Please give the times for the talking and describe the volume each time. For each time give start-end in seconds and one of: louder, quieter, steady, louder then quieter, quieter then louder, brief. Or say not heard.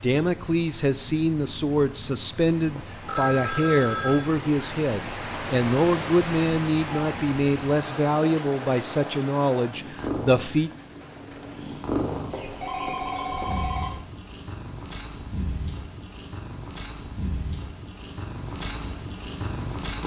0.0-10.7 steady.